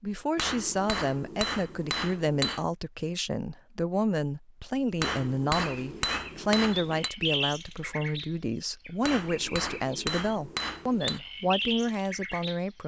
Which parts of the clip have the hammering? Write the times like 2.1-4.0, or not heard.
0.3-2.6, 5.0-7.1, 9.0-11.2.